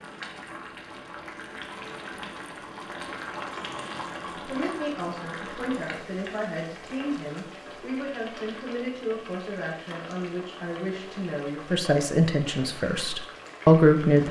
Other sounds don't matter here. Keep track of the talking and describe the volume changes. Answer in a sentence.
The loudness of the talking goes up.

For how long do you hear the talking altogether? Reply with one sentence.
The talking can be heard for 10 seconds in total.